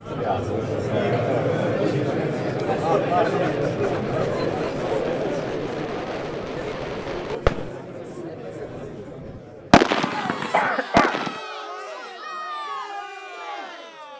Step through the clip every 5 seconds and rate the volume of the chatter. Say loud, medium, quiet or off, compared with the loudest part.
loud, medium, medium.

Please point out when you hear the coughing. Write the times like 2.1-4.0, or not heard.
10.5-11.2.